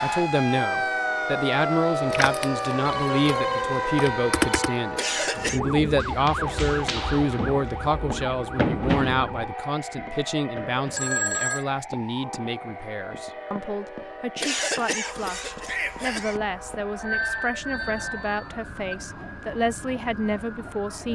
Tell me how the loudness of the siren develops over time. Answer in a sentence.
The loudness of the siren goes down.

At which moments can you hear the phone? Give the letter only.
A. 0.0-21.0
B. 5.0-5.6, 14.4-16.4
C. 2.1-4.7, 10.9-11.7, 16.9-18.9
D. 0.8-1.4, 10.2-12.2
C.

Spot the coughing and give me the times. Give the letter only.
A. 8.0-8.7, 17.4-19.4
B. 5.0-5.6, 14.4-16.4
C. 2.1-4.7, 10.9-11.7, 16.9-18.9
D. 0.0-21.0
B.